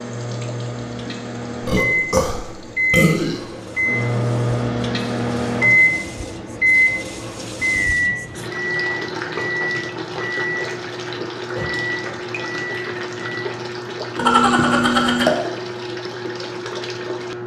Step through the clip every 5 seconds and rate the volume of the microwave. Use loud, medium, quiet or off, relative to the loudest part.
loud, loud, medium, off.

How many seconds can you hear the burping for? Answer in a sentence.
The burping can be heard for 3 seconds in total.